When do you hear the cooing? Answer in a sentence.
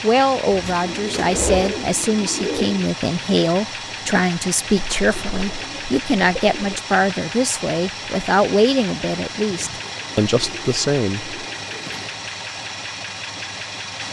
You can hear the cooing from 0.5 to 2.9 s, from 4.8 to 6.8 s and from 9.5 to 12.2 s.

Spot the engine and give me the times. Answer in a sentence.
You can hear the engine from 0.0 to 14.0 s.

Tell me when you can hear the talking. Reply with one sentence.
You can hear the talking from 0.0 to 11.3 s.